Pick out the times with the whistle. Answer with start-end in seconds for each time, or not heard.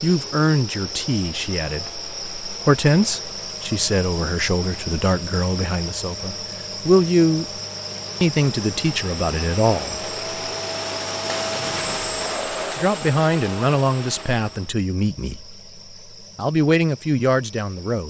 not heard.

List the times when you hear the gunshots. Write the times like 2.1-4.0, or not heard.
11.2-12.8.